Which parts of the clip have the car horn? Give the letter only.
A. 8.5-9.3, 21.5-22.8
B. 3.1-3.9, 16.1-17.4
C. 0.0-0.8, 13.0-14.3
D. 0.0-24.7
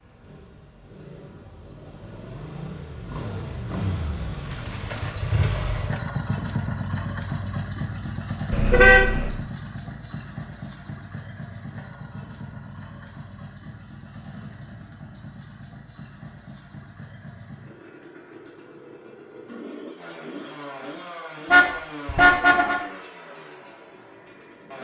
A.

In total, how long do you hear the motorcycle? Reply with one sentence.
The motorcycle can be heard for 25 seconds in total.